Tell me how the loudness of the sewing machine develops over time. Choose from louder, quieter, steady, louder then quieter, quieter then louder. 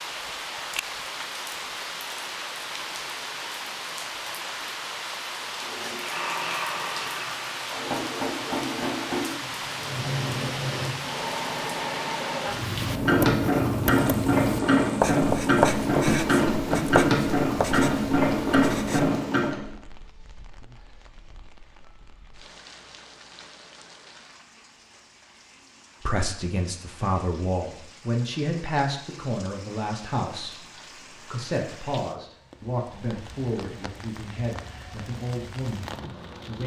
louder.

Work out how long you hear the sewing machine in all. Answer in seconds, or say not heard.
14 s.